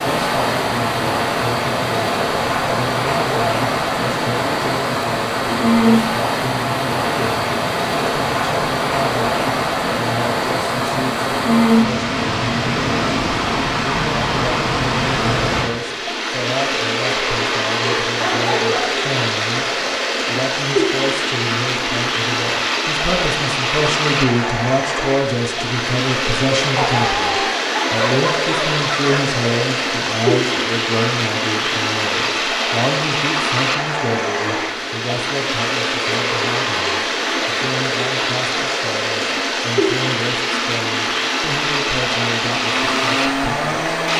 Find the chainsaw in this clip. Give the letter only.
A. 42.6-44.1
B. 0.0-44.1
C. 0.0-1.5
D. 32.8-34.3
A.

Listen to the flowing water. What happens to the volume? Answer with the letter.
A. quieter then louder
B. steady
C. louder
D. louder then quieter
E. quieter
B.